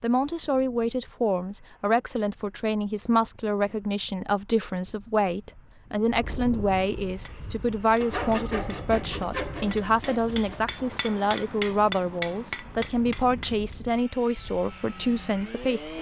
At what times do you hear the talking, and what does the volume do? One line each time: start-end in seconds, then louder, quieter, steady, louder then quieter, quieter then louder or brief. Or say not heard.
0.0-15.9 steady.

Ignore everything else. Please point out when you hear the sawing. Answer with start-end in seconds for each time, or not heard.
8.0-10.7.